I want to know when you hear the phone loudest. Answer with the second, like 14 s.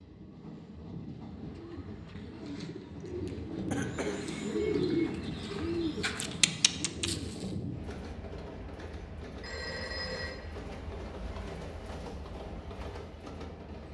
10 s.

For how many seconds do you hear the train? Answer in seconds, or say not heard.
14 s.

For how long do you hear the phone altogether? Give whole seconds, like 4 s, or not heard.
2 s.